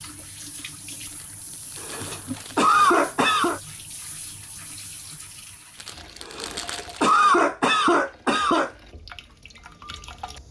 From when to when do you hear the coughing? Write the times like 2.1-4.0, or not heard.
1.8-3.6, 6.2-8.7.